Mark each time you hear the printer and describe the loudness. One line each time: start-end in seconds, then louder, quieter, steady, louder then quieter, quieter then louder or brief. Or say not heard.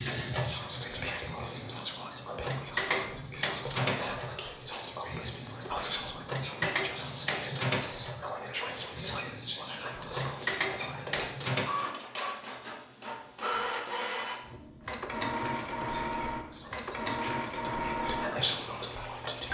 0.0-19.4 steady.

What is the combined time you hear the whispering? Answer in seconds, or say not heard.
15 s.